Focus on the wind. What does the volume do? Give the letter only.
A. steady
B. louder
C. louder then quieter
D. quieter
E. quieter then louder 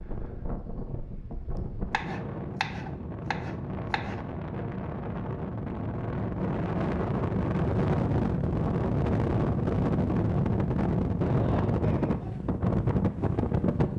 B.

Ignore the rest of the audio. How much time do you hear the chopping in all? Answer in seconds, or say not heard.
2 s.